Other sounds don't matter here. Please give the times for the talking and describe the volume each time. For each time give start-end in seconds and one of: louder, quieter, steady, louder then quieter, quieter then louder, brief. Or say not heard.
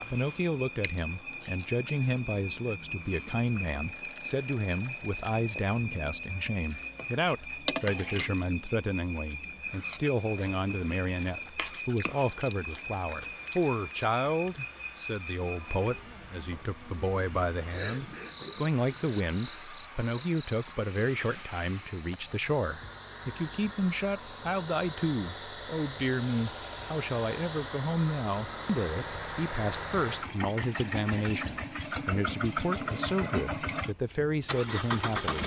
0.1-35.4 steady.